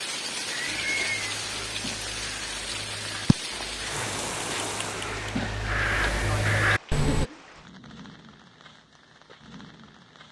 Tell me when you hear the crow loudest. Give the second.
7 s.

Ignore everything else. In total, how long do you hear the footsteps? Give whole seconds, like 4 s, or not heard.
not heard.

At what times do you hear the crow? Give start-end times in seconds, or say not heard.
0.8-7.2.